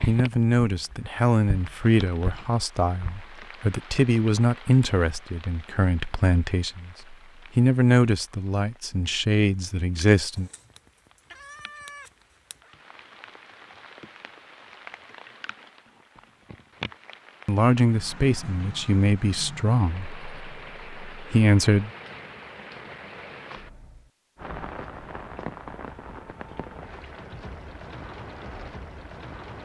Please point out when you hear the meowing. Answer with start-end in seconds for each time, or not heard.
10.3-12.8.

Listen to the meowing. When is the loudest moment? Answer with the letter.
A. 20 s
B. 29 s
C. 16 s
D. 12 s
D.